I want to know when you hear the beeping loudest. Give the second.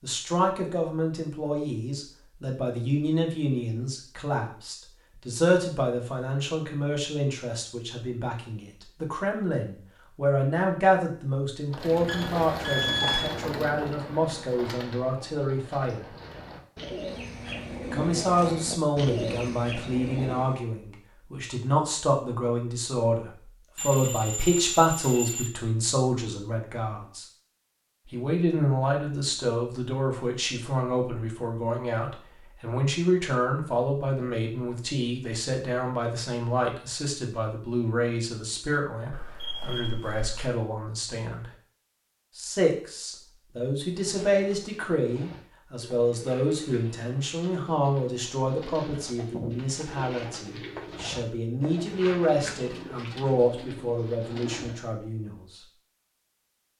13 s.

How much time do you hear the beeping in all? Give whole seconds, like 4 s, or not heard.
4 s.